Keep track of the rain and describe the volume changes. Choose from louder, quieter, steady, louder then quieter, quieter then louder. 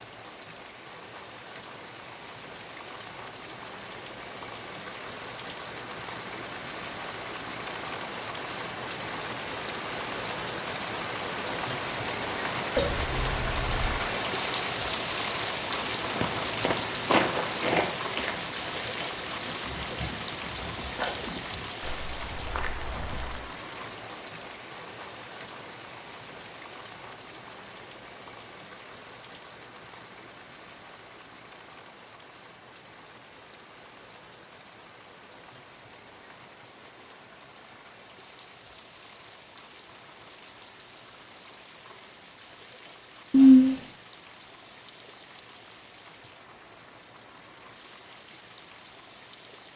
louder then quieter.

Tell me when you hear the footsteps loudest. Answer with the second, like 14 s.
17 s.